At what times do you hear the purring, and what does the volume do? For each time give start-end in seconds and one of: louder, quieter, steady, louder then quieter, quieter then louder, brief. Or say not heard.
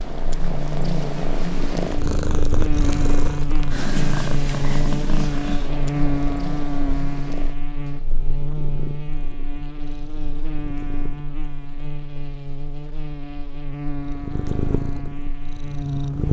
0.0-11.9 quieter
14.1-16.2 brief.